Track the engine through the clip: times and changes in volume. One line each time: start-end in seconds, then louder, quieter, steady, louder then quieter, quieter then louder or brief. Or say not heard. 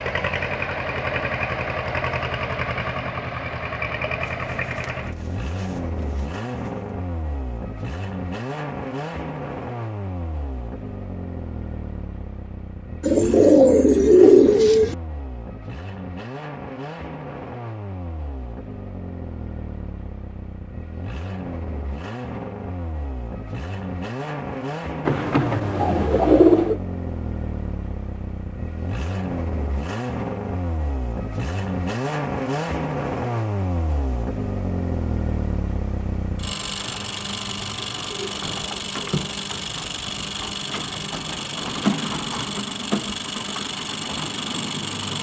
0.0-45.1 quieter then louder.